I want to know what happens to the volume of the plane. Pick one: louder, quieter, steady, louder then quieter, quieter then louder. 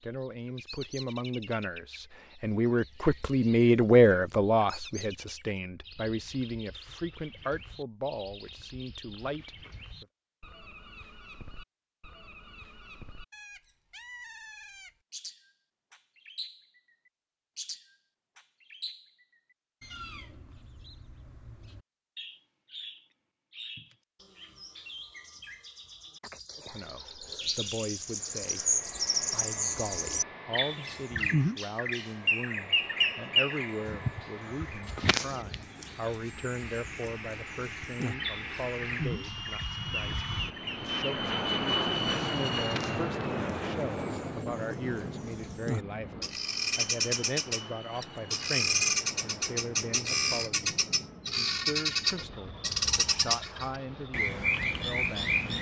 louder then quieter.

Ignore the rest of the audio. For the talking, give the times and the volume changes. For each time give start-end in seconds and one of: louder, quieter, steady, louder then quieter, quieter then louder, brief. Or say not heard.
0.0-10.1 louder then quieter
26.6-55.5 steady.